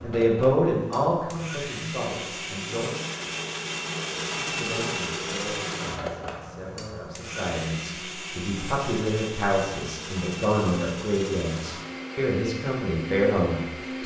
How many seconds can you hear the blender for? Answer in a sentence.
The blender can be heard for 14 seconds in total.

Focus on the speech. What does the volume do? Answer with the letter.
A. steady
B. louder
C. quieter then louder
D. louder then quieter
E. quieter
C.